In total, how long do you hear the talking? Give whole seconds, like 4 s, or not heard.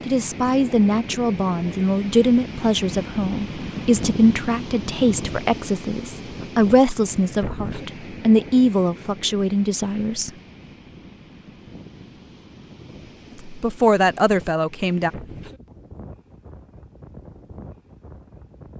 12 s.